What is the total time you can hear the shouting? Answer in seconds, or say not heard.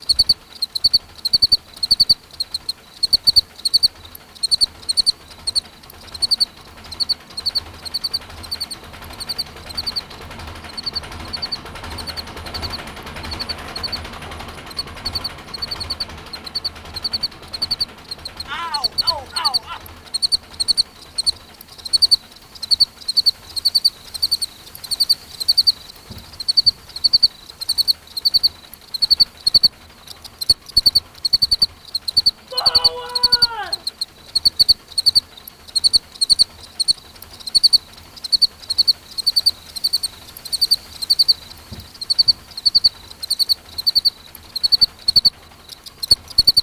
3 s.